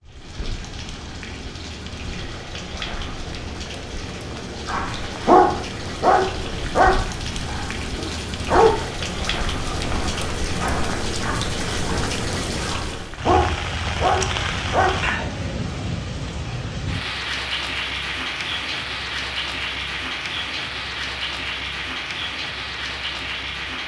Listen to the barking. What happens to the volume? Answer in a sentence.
The loudness of the barking goes down, then up.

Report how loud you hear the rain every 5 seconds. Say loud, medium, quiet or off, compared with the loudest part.
medium, loud, loud, loud, loud.